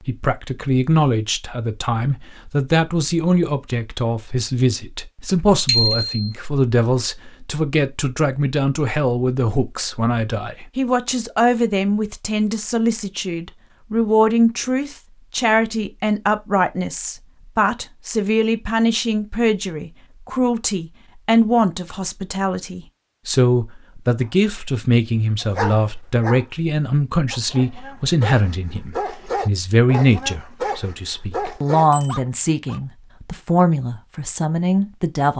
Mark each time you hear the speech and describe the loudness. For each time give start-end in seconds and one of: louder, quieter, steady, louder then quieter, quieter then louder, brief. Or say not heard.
0.1-35.3 steady.